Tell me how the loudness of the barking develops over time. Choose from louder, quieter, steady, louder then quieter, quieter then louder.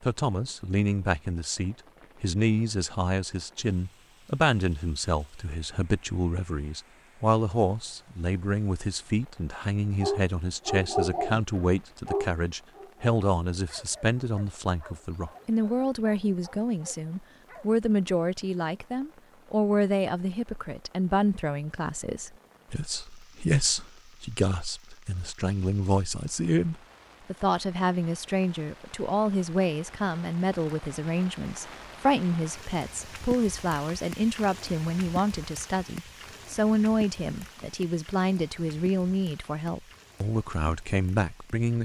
quieter.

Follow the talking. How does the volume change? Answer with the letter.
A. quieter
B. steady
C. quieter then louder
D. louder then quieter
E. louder
B.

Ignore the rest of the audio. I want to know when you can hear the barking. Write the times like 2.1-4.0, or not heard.
10.0-17.6.